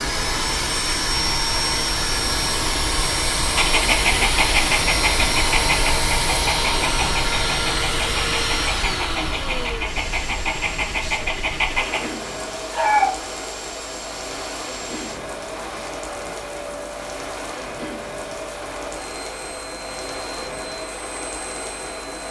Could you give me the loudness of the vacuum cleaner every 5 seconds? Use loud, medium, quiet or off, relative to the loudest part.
loud, loud, quiet, quiet, quiet.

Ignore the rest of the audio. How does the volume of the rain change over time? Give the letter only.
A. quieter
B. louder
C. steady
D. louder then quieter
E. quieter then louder
C.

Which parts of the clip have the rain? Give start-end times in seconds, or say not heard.
0.0-22.2.